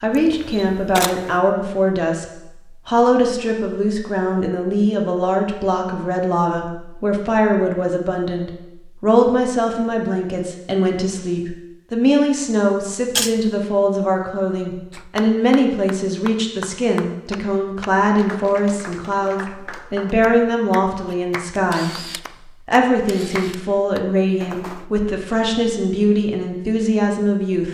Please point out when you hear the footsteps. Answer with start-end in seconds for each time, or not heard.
not heard.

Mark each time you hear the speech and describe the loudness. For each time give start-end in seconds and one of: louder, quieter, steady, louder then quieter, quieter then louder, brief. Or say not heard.
0.0-27.7 steady.